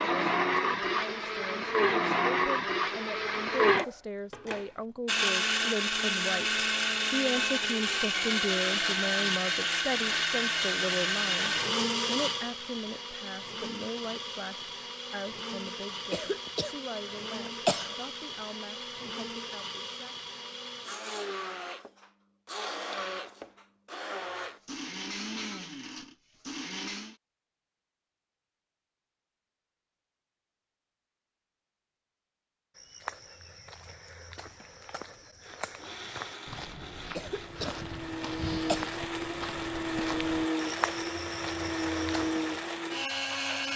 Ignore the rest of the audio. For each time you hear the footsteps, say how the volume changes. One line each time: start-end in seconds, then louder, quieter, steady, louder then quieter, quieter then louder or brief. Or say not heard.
32.8-42.6 louder.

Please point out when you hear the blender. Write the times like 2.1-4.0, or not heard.
0.0-27.1, 35.4-43.7.